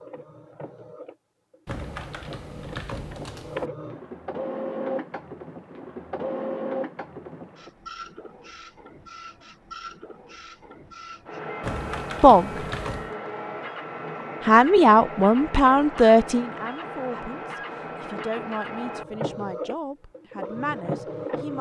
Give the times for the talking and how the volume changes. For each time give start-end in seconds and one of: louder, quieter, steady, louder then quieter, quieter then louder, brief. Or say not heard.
12.2-12.7 brief
14.4-21.5 quieter.